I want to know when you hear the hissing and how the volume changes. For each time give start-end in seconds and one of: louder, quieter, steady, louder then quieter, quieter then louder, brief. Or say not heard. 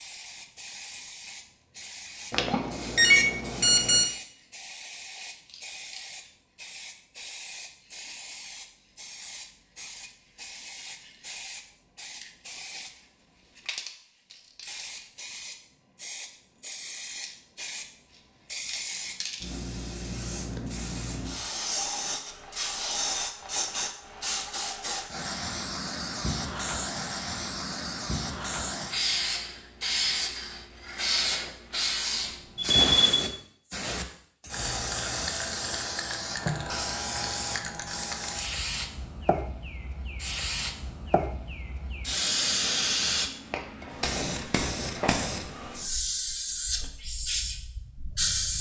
0.0-48.5 louder.